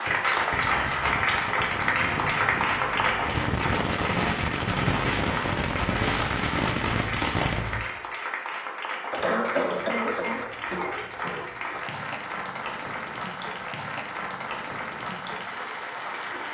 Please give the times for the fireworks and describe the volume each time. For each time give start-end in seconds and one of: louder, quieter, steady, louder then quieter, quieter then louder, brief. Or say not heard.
0.0-7.9 louder.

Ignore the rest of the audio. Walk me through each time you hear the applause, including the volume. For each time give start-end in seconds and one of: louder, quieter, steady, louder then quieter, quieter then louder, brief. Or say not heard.
0.0-16.5 quieter.